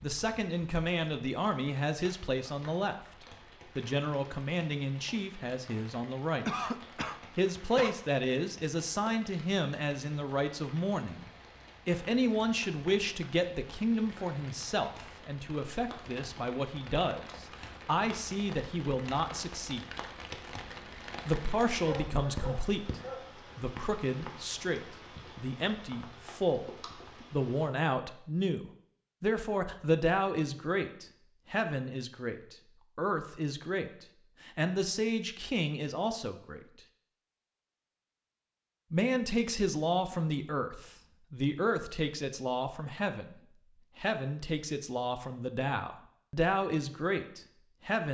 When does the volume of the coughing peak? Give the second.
7 s.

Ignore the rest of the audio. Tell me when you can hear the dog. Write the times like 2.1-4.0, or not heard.
21.8-23.3.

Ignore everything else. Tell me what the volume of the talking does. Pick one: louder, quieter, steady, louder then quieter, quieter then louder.
steady.